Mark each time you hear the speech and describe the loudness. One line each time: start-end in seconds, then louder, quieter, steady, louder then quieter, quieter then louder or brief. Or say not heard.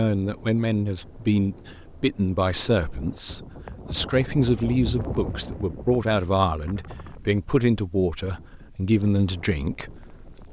0.0-10.4 steady.